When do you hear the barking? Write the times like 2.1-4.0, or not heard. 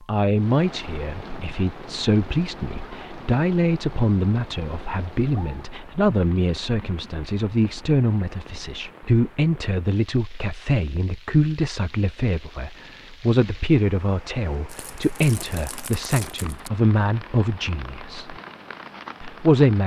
not heard.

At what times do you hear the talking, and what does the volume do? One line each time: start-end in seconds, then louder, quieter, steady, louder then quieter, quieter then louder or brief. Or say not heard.
0.1-18.4 steady
19.2-19.8 brief.